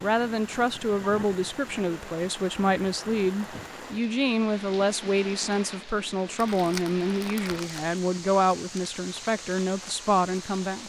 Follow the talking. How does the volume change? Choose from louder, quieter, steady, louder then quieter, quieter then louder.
steady.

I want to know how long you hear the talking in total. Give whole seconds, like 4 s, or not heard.
11 s.